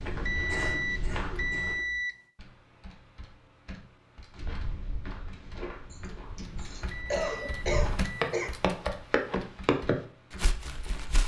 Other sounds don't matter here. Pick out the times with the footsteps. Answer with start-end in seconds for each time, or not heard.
0.0-1.8, 4.3-11.2.